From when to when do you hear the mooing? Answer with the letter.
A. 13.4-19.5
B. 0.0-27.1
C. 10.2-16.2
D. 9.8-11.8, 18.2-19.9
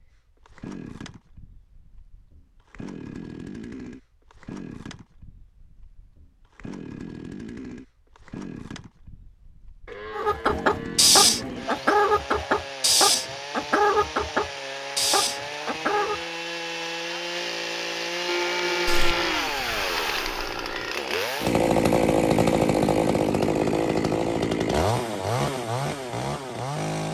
D.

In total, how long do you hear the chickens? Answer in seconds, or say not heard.
6 s.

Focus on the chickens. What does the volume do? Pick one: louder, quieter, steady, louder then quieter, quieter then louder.
quieter.